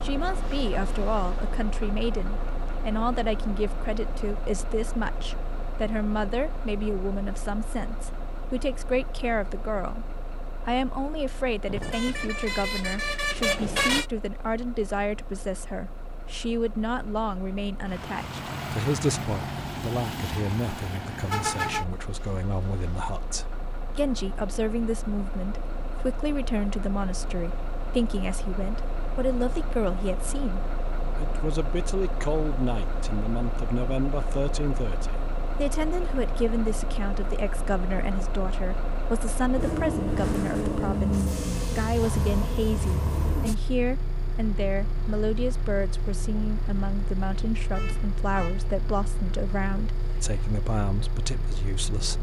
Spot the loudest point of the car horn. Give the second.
14 s.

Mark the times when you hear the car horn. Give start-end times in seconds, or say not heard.
11.7-14.1, 47.7-48.7.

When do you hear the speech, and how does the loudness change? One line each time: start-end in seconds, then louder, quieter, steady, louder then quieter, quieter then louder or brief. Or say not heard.
0.0-10.1 steady
10.7-52.1 steady.